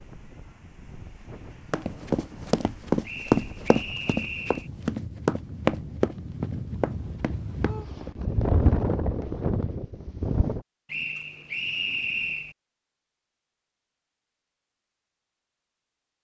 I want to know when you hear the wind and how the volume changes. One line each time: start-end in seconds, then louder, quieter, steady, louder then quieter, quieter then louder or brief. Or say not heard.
0.0-10.6 louder.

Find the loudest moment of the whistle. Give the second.
12 s.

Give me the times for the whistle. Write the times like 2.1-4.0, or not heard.
3.0-4.7, 10.8-12.6.